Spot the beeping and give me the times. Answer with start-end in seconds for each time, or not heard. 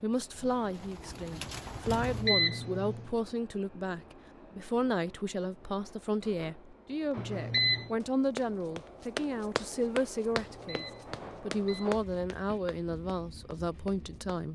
1.9-3.1, 7.2-7.9, 10.4-11.9.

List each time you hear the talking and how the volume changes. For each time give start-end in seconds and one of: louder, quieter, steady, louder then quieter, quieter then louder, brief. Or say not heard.
0.0-14.4 steady.